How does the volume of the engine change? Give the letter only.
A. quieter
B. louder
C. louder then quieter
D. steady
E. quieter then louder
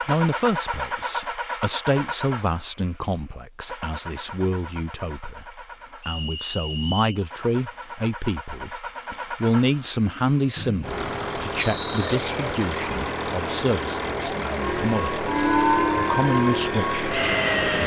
E.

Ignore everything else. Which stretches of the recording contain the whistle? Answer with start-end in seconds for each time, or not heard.
6.0-7.2, 10.6-12.2.